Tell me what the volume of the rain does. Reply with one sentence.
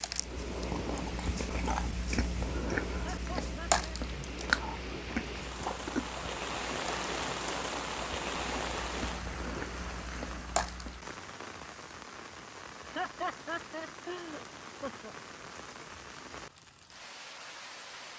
The loudness of the rain goes up, then down.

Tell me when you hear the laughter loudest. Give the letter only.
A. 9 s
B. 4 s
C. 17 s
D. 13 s
D.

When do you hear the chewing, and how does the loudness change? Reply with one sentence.
You can hear the chewing from 0.0 to 11.1 s, getting quieter then louder.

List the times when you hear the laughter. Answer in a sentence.
The laughter can be heard from 3.0 to 4.0 s and from 12.8 to 15.2 s.